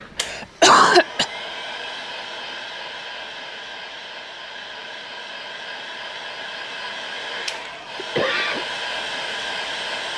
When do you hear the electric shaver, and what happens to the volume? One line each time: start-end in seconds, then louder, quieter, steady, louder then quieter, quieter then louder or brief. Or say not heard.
not heard.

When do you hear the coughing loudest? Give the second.
1 s.